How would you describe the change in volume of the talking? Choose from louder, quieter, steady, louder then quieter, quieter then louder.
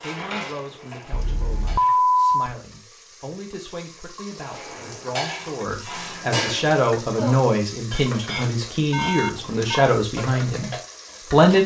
louder.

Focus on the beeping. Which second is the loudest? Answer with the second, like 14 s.
2 s.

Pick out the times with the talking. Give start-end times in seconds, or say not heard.
0.0-11.6.